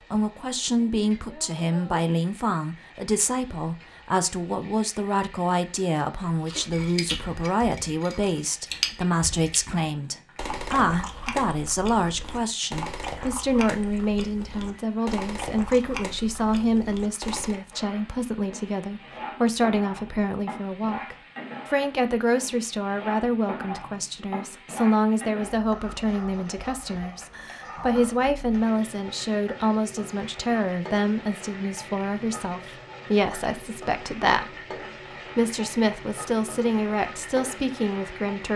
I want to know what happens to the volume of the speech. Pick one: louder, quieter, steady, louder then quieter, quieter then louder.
steady.